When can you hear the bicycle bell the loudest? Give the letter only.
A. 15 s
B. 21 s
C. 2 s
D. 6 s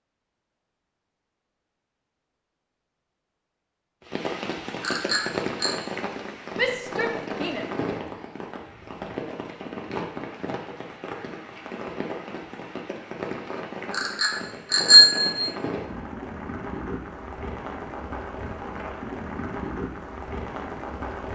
A.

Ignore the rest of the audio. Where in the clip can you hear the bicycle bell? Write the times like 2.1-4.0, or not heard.
4.8-5.7, 13.9-15.4.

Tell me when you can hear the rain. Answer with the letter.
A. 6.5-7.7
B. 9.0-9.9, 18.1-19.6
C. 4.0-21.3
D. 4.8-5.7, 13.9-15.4
C.